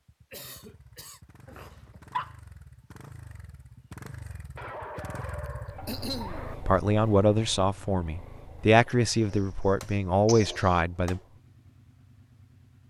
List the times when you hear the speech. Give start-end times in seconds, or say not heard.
6.7-11.2.